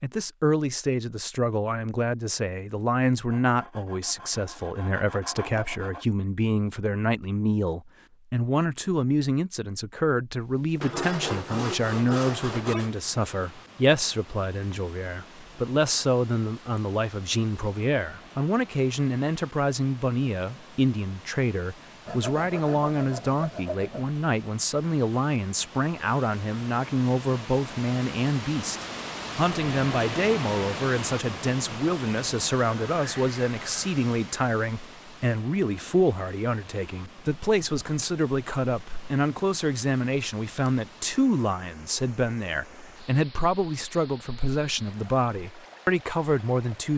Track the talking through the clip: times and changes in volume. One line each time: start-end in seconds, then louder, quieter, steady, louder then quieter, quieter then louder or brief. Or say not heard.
0.0-46.9 steady.